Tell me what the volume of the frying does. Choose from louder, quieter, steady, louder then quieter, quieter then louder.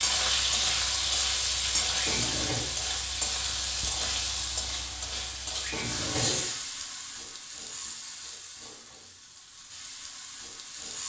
quieter.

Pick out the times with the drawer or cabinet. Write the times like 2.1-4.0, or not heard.
1.9-2.6, 5.6-6.5.